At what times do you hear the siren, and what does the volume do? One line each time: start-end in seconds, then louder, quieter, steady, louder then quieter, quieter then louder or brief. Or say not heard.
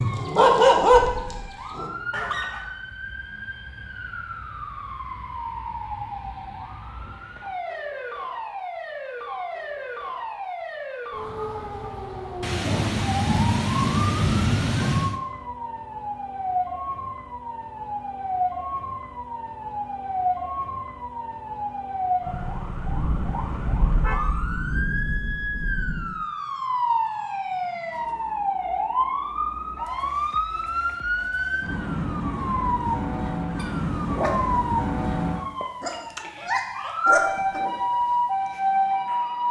0.0-39.4 louder.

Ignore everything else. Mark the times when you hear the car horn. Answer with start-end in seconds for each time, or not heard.
not heard.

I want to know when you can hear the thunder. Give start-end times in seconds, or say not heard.
12.4-15.2, 22.9-26.2.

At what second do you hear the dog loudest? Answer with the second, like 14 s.
1 s.